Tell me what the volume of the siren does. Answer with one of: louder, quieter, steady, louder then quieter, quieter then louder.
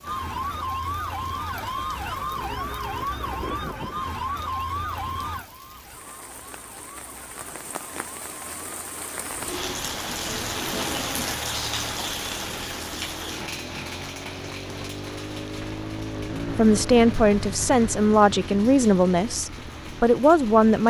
quieter.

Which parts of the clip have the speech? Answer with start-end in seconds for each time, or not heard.
16.5-20.8.